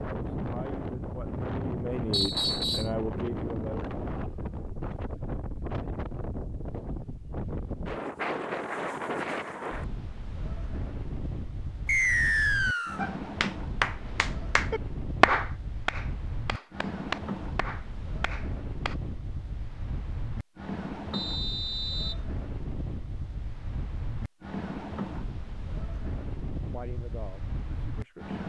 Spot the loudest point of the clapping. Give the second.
15 s.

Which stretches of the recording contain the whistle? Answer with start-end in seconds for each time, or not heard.
2.1-2.9, 11.8-13.0, 21.1-22.1.